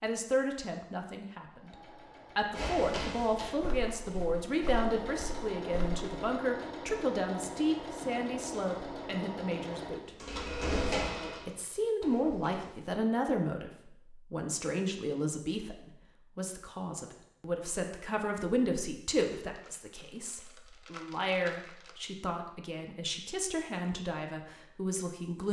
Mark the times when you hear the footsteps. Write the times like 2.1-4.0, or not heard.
2.5-6.0, 10.1-12.8.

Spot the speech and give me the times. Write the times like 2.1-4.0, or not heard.
0.0-1.8, 2.4-10.1, 11.4-25.4.